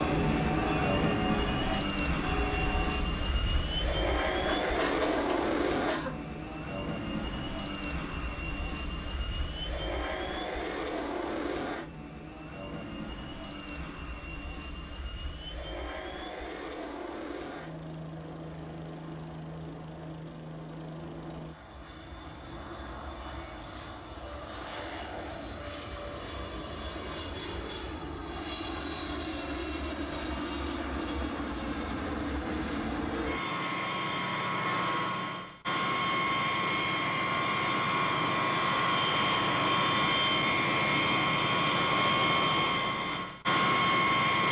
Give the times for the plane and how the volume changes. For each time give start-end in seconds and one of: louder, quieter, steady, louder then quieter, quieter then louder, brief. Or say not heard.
0.0-44.4 quieter then louder.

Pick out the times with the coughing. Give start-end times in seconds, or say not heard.
4.5-6.2.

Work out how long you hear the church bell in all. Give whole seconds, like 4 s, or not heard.
3 s.